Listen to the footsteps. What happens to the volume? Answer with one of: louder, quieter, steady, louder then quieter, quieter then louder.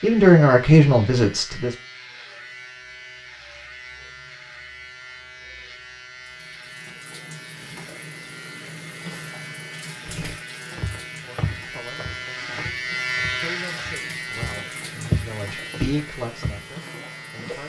quieter then louder.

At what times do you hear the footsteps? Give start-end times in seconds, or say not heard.
10.1-16.6.